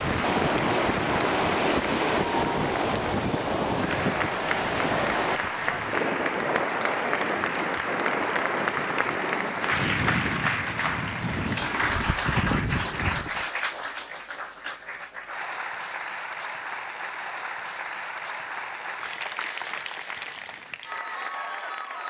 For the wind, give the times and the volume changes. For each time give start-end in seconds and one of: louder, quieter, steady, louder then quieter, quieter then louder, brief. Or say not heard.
0.0-13.4 quieter.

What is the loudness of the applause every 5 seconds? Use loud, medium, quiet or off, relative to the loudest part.
loud, loud, loud, medium, medium.